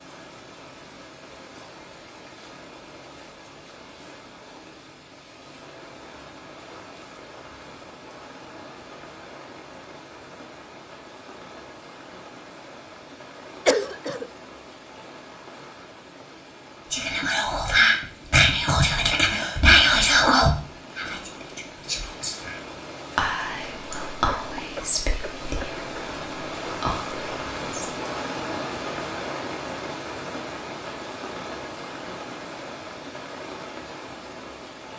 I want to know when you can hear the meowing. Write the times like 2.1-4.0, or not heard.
not heard.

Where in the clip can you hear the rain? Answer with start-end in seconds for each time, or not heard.
0.0-34.9.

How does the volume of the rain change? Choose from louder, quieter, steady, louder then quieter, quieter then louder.
louder.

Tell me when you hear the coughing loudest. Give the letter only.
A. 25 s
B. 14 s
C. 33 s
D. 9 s
B.